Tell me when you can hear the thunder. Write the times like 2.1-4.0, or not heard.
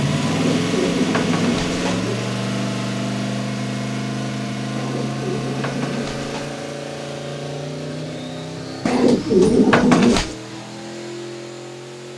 not heard.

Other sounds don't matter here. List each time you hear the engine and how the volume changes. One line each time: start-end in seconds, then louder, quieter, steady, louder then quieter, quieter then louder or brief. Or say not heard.
0.0-12.1 quieter.